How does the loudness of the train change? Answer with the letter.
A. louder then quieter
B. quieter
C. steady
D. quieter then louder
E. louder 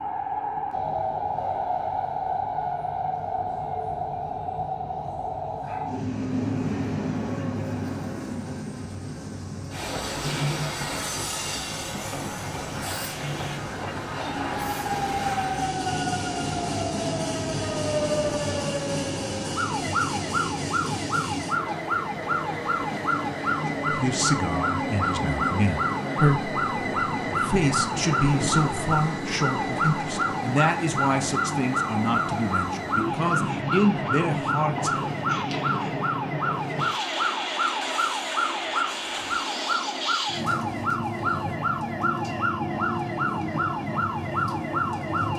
C.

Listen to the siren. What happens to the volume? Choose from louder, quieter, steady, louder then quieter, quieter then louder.
steady.